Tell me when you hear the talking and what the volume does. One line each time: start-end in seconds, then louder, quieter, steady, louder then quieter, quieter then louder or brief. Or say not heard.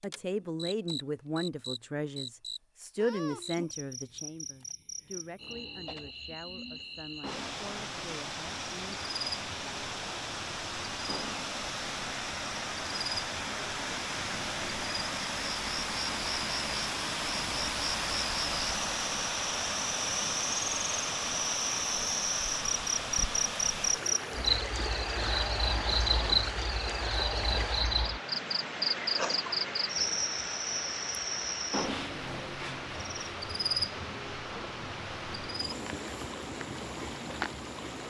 0.0-9.0 quieter.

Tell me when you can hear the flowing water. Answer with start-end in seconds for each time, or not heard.
7.2-38.0.